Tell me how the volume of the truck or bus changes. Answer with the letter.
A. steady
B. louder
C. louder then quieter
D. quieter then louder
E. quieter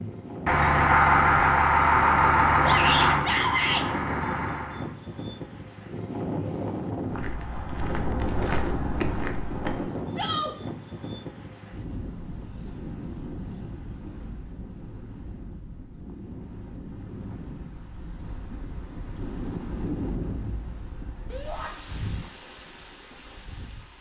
E.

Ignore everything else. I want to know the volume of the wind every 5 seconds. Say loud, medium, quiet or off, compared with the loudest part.
loud, loud, medium, medium, medium.